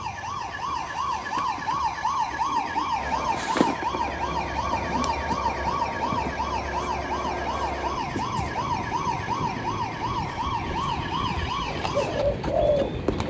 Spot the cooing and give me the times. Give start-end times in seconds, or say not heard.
11.7-13.2.